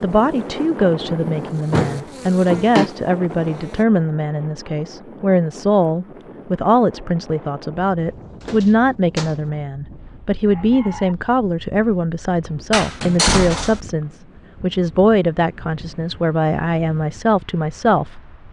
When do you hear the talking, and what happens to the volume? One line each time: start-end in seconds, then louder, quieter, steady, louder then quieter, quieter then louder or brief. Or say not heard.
0.0-18.2 steady.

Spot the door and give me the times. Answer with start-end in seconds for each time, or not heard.
1.7-2.9, 8.4-9.4, 12.7-13.8.